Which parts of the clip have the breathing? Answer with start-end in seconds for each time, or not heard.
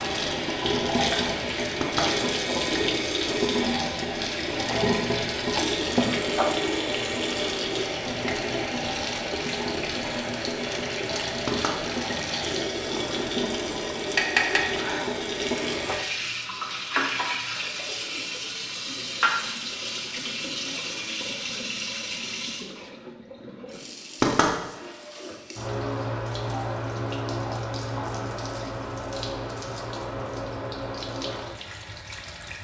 not heard.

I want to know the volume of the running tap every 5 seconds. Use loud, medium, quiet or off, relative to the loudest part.
loud, loud, loud, loud, medium, medium, medium.